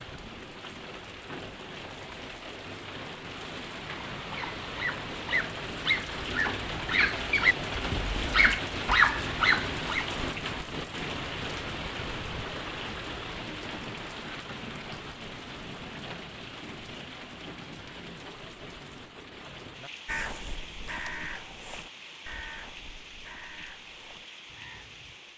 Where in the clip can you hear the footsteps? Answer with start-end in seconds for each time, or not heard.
not heard.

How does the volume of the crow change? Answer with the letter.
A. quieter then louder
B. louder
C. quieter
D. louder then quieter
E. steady
C.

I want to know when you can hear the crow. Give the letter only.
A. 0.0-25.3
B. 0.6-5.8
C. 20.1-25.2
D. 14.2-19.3
C.